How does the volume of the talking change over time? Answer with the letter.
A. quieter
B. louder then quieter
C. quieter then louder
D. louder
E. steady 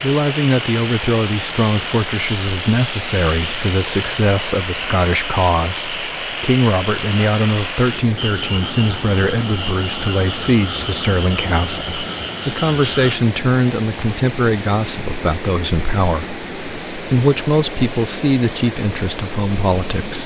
E.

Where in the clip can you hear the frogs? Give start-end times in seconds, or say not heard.
0.0-13.2.